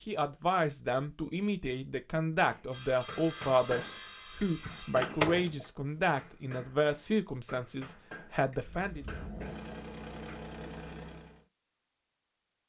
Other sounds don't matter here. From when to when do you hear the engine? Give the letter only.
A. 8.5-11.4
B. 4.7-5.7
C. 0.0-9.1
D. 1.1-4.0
A.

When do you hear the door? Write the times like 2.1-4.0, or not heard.
4.7-5.7.